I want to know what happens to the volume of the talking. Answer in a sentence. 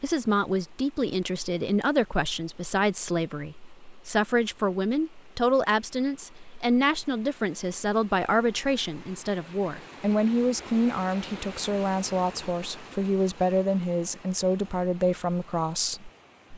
The volume of the talking stays about the same.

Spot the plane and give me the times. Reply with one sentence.
You can't hear the plane here.